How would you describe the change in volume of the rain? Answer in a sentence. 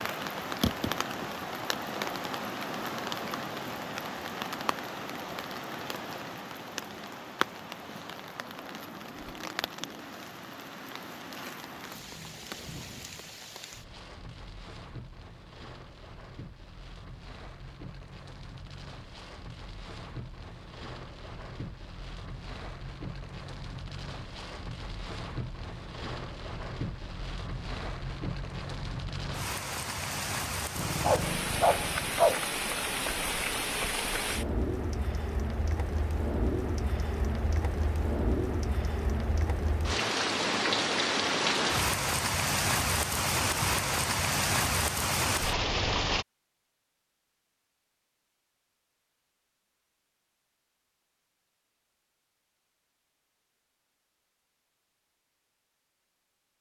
The volume of the rain goes down, then up.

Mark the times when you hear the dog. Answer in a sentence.
You can hear the dog from 30.8 to 32.4 s.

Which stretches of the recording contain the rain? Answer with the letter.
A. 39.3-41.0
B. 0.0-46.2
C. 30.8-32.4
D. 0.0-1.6
B.